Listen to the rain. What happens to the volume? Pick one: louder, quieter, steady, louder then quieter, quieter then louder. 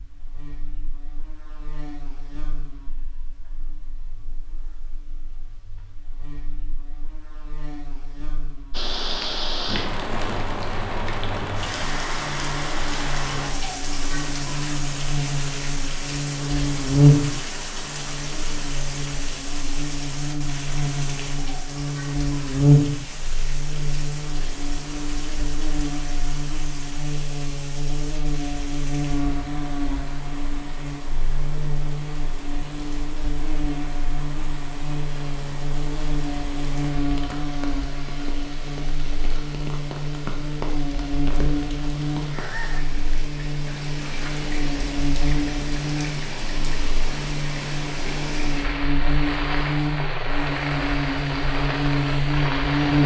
quieter then louder.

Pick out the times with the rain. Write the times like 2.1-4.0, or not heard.
8.7-53.0.